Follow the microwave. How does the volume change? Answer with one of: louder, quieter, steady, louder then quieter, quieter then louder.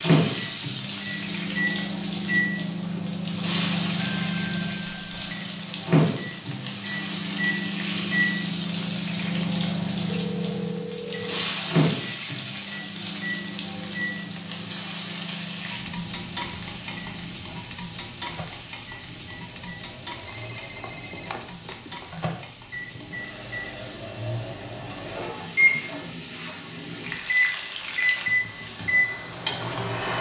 quieter then louder.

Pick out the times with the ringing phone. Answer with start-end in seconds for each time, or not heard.
4.0-5.3, 10.1-11.5, 20.2-22.1.